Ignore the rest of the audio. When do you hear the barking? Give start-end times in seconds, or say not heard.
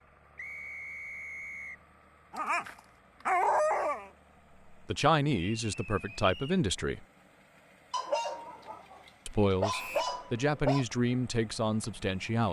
2.3-4.1, 7.9-10.8.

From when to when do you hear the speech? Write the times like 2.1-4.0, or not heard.
4.7-7.0, 9.2-12.4.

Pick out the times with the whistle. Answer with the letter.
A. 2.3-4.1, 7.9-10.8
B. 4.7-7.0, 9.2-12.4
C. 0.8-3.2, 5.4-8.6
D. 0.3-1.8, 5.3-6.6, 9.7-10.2
D.